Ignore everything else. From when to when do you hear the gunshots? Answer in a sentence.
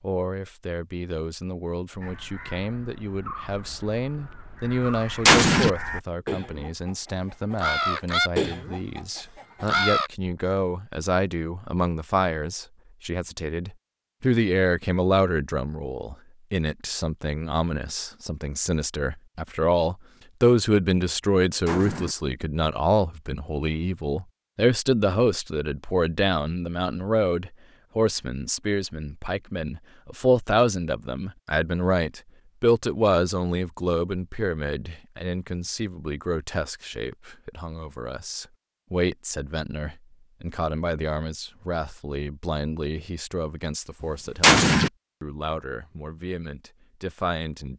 You can hear the gunshots from 5.2 to 5.7 s, from 21.6 to 22.1 s and from 44.4 to 44.9 s.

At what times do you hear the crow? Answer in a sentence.
You can hear the crow from 2.0 to 10.1 s.